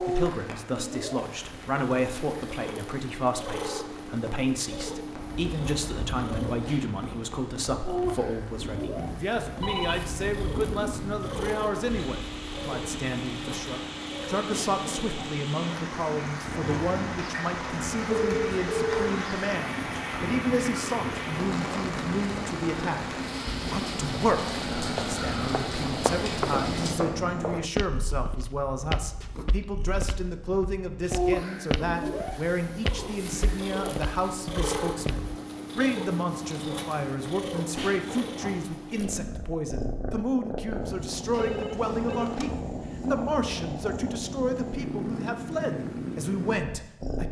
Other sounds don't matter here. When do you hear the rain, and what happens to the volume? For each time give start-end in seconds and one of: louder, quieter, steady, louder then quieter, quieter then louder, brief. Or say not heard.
0.0-26.9 louder.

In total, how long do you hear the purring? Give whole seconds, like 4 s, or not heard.
47 s.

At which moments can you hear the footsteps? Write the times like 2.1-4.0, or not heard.
24.8-35.3.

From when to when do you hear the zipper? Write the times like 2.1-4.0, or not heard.
not heard.